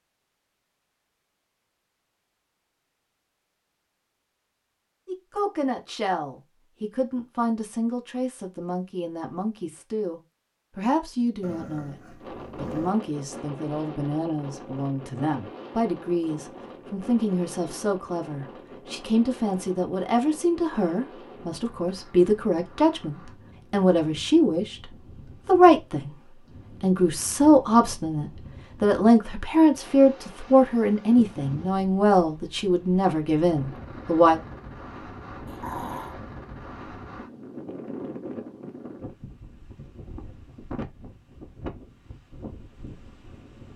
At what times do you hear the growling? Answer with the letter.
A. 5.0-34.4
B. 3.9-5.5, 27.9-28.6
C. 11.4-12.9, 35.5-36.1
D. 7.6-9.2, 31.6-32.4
C.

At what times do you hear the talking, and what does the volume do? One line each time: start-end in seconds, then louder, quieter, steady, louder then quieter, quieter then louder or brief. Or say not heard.
5.0-34.4 louder.